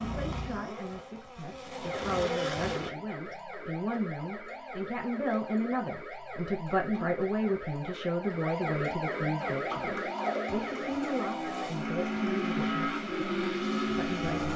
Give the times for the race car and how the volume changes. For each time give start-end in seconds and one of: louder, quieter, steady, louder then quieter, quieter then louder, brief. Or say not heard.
0.0-3.0 brief
9.3-14.5 louder.